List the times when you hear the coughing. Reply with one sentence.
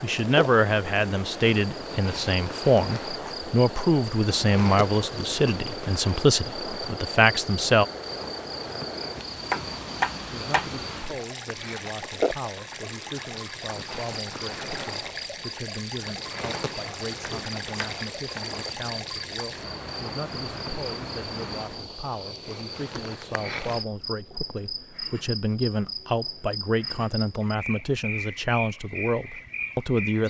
You can't hear the coughing here.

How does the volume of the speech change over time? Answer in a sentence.
The volume of the speech goes down, then up.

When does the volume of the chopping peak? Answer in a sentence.
The loudest moment of the chopping is at 10 seconds.